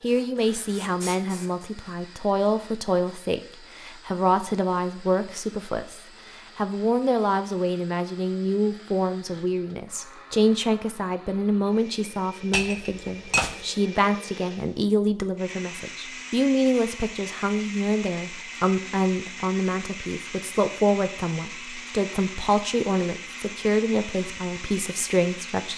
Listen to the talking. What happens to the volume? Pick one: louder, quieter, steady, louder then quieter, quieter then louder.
steady.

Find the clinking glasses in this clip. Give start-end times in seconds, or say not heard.
12.5-13.6.